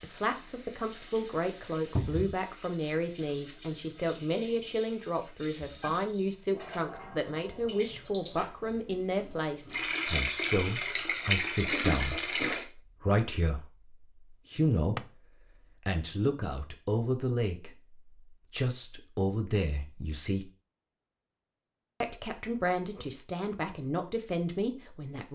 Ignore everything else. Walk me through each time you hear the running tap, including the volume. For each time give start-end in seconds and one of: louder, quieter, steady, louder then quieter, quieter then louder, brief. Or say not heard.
0.0-12.7 louder.